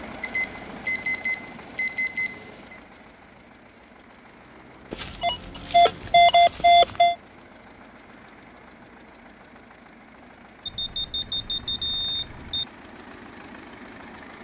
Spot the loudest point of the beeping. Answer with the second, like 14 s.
6 s.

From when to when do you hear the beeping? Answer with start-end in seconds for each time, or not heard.
0.2-2.8, 4.9-7.2, 10.7-12.7.